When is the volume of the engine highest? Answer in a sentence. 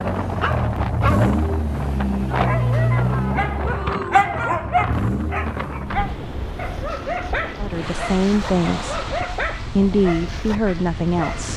The volume of the engine peaks at 3 seconds.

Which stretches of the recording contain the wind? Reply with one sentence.
You can hear the wind from 0.0 to 11.5 s.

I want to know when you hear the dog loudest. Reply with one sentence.
The loudest moment of the dog is at 4 seconds.